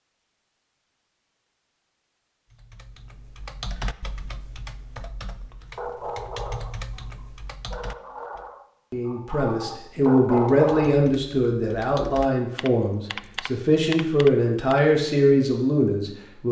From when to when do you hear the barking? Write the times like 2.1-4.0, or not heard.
5.8-10.9.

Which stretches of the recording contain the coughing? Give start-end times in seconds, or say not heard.
not heard.